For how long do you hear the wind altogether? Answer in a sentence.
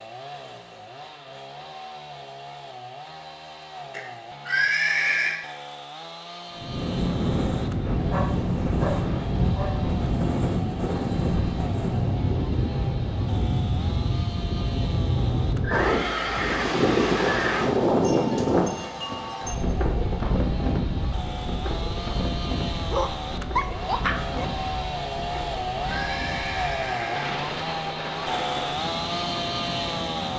You can hear the wind for 24 seconds altogether.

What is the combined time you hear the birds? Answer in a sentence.
You can't hear the birds here.